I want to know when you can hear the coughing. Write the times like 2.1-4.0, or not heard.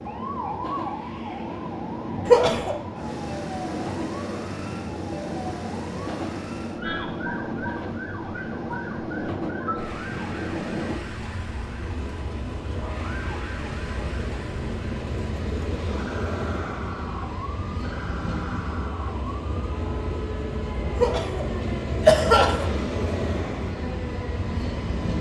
2.2-2.8, 20.9-22.9.